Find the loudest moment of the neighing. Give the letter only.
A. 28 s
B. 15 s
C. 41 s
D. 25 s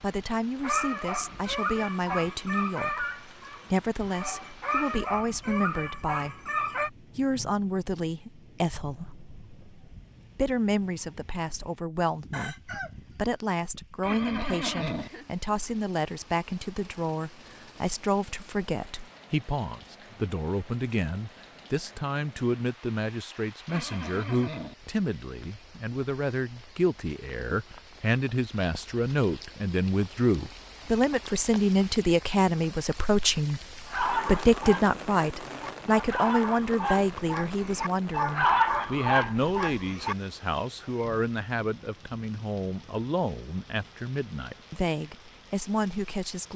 B.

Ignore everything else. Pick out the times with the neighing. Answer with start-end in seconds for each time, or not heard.
14.0-15.1, 23.6-24.8.